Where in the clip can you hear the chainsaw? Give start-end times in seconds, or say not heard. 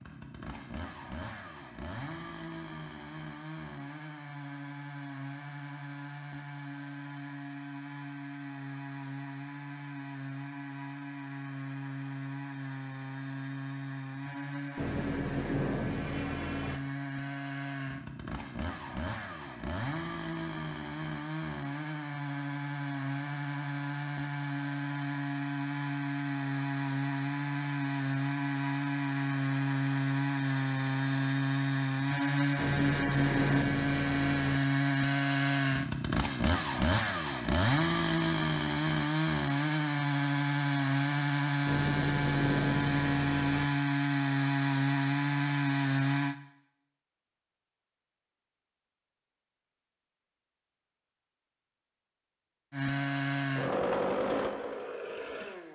0.0-46.4, 52.7-55.7.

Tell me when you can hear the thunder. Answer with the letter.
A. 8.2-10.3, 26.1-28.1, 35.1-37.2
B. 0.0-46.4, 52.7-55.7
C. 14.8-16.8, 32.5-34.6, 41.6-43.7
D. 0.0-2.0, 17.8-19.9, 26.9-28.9
C.